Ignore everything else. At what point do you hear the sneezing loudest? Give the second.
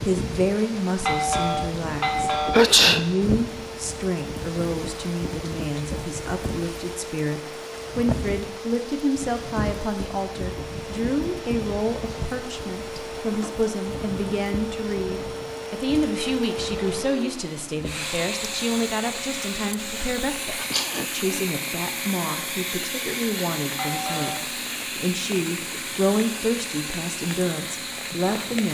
3 s.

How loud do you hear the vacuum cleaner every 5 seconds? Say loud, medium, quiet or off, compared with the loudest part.
medium, medium, loud, loud, loud, loud.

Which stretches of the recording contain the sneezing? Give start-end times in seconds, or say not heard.
2.5-3.0, 20.5-21.4.